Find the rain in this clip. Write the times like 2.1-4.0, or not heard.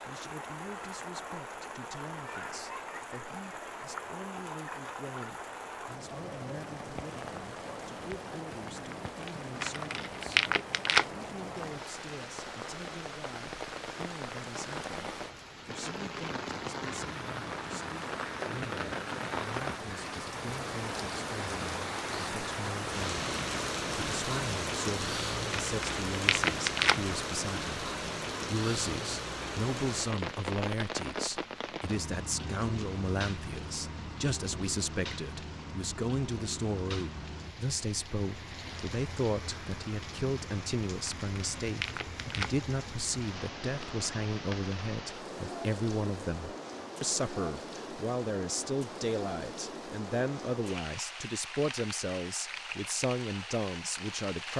0.0-54.5.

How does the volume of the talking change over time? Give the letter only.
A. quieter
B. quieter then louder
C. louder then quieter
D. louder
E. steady
D.